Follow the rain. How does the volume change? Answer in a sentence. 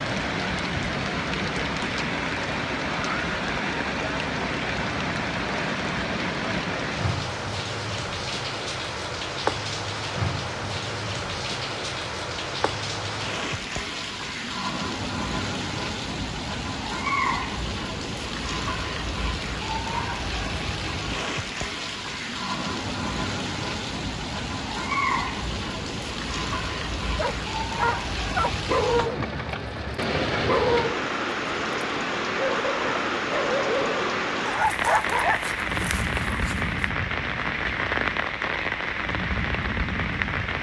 The volume of the rain stays about the same.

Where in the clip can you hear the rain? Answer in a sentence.
The rain can be heard from 0.0 to 40.5 s.